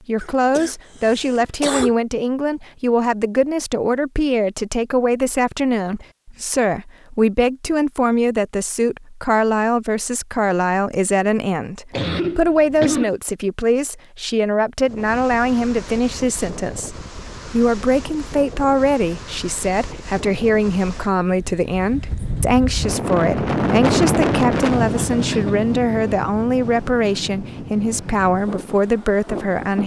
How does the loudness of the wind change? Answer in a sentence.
The volume of the wind goes up, then down.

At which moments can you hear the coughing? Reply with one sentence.
The coughing can be heard from 0.2 to 1.9 s, from 11.9 to 13.2 s and from 24.9 to 25.7 s.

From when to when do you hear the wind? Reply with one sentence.
The wind can be heard from 14.8 to 29.8 s.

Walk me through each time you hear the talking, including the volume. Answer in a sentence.
The talking can be heard from 0.1 to 29.8 s, at a steady volume.